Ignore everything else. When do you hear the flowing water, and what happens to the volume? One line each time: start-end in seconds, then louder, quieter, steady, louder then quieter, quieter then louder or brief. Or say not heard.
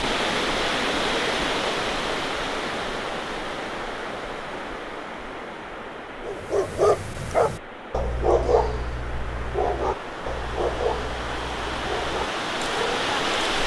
0.0-13.6 quieter then louder.